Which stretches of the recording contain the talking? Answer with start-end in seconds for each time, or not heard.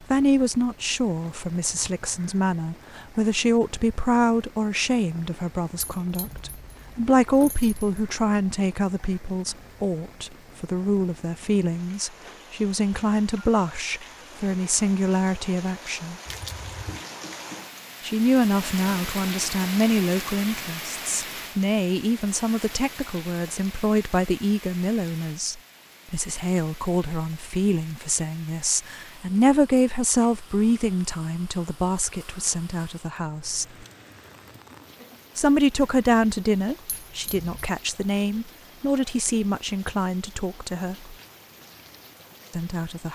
0.1-16.1, 18.0-33.6, 35.4-41.1, 42.5-43.1.